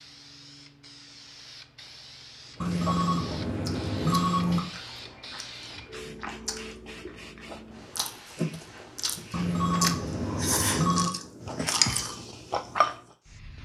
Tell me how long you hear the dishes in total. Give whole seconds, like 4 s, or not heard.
not heard.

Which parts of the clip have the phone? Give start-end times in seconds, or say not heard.
2.6-4.6, 9.3-11.1.